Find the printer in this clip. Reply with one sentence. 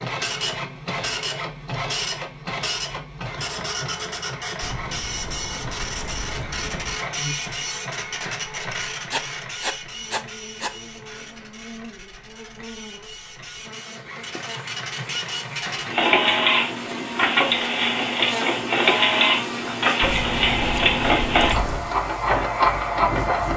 You can hear the printer from 0.0 to 23.5 s.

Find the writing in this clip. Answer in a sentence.
The writing can be heard from 9.1 to 10.7 s.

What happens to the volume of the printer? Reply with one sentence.
The volume of the printer goes down, then up.